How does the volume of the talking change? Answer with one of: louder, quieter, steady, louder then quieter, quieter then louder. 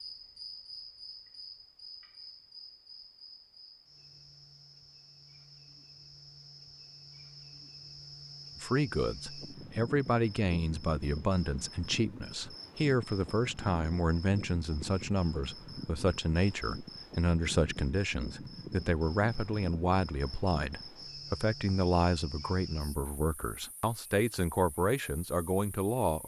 steady.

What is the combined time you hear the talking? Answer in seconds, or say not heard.
18 s.